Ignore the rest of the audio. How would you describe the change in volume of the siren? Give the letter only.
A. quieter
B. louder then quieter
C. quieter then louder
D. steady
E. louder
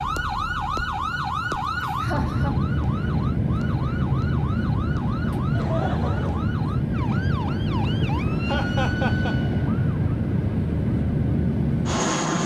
A.